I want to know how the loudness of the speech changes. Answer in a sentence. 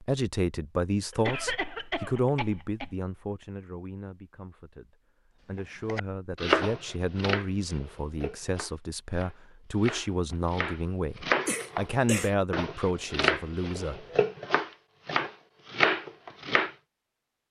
The volume of the speech goes down, then up.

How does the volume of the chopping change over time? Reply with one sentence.
The loudness of the chopping goes down, then up.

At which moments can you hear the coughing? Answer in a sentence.
The coughing can be heard from 1.1 to 3.0 s and from 11.4 to 12.3 s.